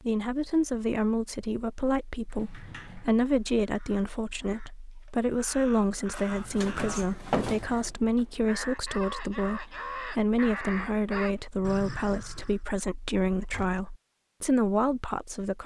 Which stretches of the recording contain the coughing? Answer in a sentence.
You can't hear the coughing here.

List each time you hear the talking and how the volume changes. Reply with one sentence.
The talking can be heard from 0.0 to 15.6 s, at a steady volume.